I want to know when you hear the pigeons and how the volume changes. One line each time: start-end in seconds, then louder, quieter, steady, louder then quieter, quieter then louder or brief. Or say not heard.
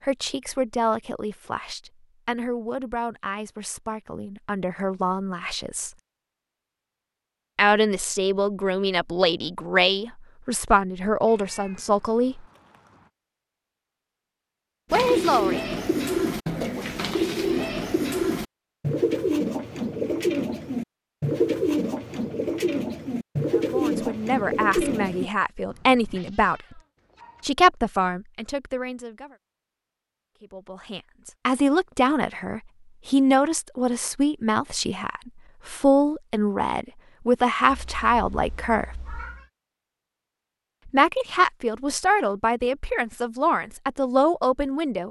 14.9-25.3 steady.